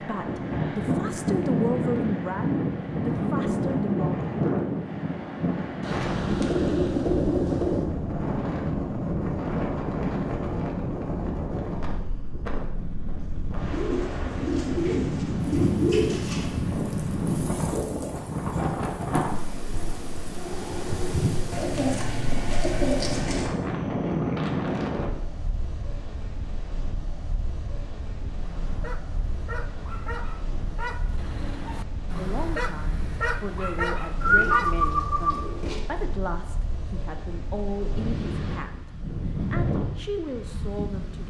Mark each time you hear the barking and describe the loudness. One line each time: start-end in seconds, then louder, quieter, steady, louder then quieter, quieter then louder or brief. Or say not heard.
28.2-34.9 louder.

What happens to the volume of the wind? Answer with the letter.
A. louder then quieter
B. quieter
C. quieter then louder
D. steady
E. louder
B.